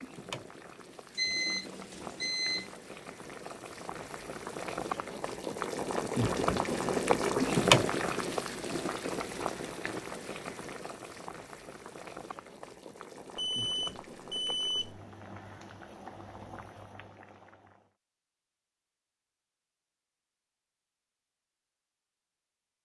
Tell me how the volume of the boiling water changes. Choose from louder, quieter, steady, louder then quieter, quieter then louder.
louder then quieter.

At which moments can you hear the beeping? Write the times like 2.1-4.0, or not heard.
1.1-2.7, 13.3-15.0.